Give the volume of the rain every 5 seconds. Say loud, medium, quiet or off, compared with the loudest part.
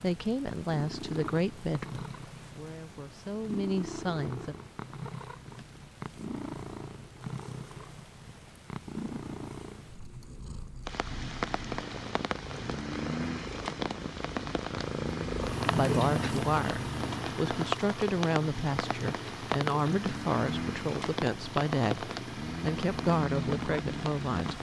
off, off, loud, loud, loud.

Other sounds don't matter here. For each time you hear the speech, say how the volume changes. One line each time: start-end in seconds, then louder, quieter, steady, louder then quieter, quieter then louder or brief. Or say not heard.
0.0-4.5 quieter then louder
15.7-24.5 steady.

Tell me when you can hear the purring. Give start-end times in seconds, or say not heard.
0.0-24.5.